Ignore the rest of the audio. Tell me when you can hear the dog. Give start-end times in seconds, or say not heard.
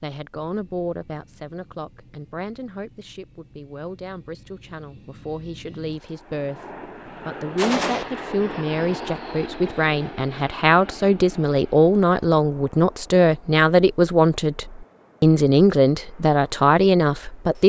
not heard.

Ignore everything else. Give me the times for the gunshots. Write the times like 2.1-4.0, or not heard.
7.5-8.1.